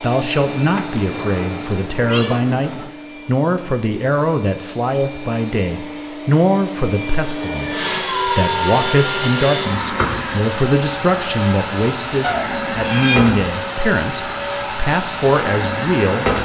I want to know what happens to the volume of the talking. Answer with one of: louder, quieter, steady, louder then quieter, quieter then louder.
steady.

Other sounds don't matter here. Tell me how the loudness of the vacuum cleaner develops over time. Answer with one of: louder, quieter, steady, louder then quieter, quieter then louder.
louder.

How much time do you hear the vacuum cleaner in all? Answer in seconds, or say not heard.
16 s.